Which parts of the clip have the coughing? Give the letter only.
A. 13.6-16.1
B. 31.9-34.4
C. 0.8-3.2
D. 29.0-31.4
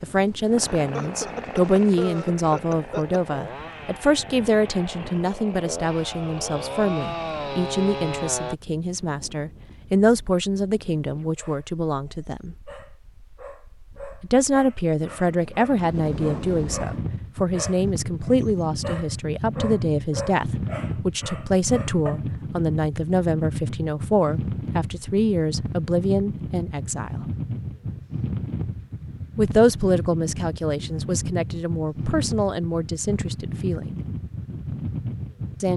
C.